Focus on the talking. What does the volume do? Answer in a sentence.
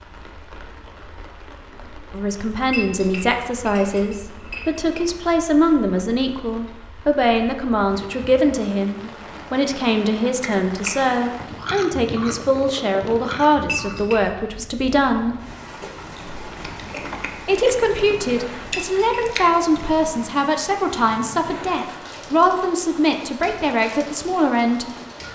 The volume of the talking stays about the same.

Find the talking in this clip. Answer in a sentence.
You can hear the talking from 2.1 to 15.3 s and from 17.4 to 24.9 s.